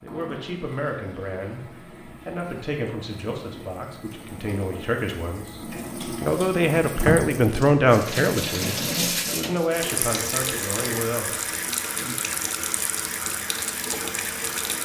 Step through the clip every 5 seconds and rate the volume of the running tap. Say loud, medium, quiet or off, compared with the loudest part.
quiet, loud, loud.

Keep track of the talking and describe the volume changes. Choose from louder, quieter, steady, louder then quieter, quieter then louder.
louder then quieter.